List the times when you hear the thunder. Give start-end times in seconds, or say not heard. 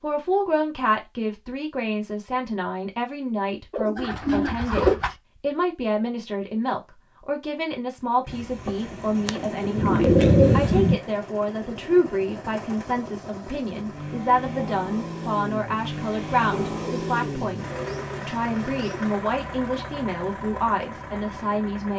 8.2-10.9.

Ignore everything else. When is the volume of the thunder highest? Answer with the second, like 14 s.
10 s.